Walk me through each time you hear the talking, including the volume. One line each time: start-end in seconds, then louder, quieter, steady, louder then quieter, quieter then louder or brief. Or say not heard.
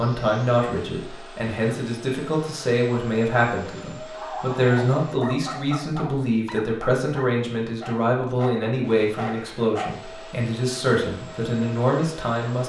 0.0-12.6 steady.